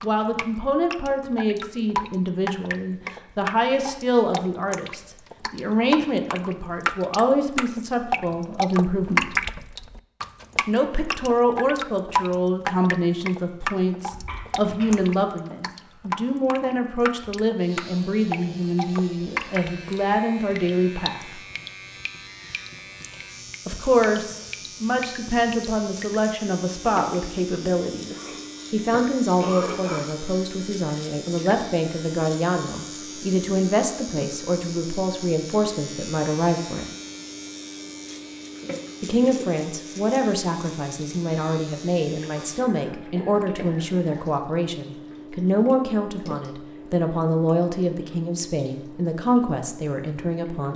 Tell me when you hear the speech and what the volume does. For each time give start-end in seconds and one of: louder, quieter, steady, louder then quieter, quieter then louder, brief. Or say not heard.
0.0-9.3 steady
10.7-21.4 steady
23.6-37.0 steady
39.0-50.7 steady.